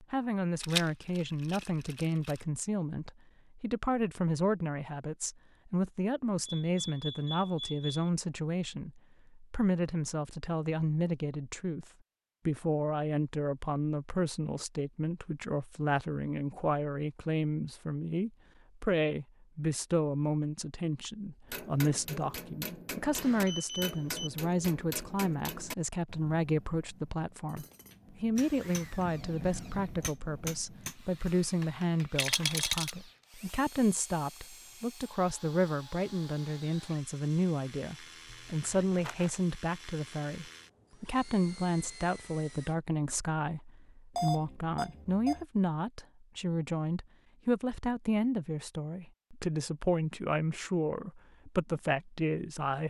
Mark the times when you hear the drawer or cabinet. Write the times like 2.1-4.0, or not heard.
not heard.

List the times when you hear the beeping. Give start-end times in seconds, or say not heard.
6.5-8.1, 23.1-24.3, 44.1-45.5.